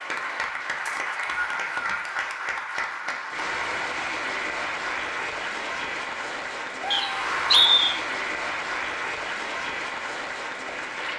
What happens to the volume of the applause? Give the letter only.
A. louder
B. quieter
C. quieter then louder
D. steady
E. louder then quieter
D.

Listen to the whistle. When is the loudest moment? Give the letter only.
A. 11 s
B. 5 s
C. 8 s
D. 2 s
C.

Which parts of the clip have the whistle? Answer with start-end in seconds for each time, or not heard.
0.8-2.0, 6.9-8.0.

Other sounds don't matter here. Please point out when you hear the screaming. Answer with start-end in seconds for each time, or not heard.
6.8-7.8.